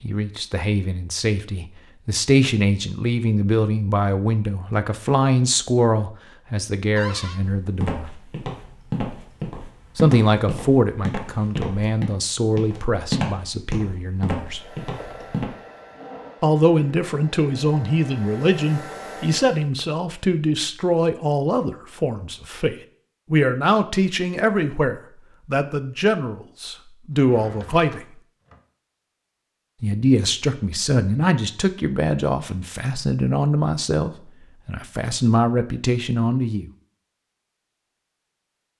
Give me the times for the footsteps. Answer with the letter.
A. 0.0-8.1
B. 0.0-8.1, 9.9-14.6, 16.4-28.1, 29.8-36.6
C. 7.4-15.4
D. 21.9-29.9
C.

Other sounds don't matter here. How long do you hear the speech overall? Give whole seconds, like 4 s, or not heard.
31 s.